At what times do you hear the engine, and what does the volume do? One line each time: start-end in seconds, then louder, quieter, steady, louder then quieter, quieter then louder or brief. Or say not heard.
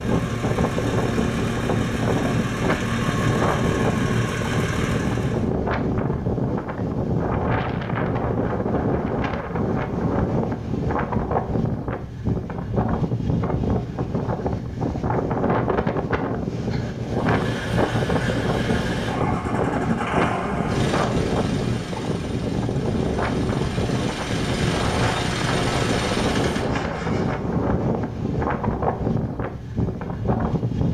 0.0-5.5 steady
17.0-27.4 quieter then louder.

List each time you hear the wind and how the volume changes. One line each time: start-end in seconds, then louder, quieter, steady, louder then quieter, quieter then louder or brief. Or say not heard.
0.0-30.9 steady.